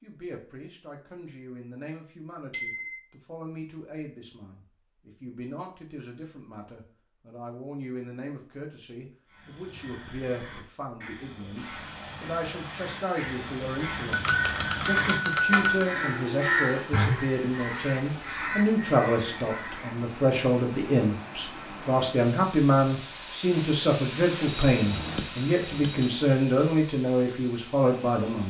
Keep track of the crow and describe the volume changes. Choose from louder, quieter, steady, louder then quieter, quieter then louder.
louder then quieter.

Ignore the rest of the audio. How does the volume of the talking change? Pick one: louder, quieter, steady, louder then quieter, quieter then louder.
louder.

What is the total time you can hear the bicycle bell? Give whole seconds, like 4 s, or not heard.
4 s.